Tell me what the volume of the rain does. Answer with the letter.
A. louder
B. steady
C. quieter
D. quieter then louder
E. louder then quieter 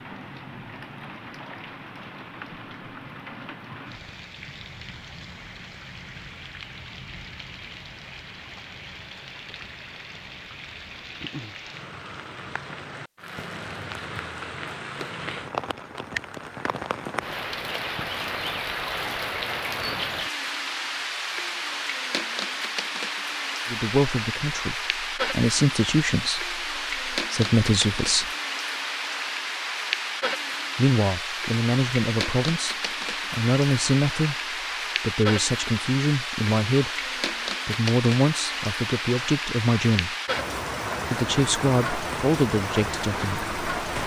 A.